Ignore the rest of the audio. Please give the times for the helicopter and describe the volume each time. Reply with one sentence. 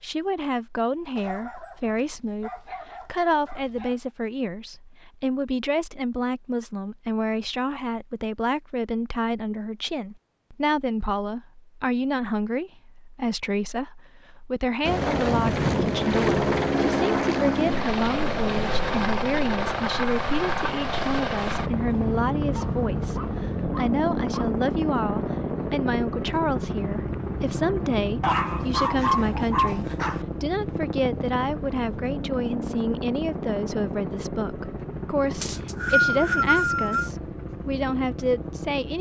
You can hear the helicopter from 14.8 to 38.9 s, getting quieter.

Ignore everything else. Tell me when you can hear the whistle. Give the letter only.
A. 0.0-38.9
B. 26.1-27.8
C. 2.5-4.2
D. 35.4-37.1
D.